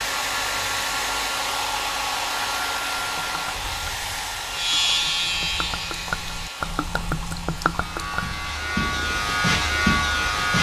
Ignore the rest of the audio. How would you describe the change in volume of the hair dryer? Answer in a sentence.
The loudness of the hair dryer goes down.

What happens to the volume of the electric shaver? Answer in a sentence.
The loudness of the electric shaver goes down, then up.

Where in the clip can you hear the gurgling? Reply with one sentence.
You can hear the gurgling from 2.9 to 9.4 s.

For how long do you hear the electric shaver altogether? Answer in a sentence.
You can hear the electric shaver for 6 seconds altogether.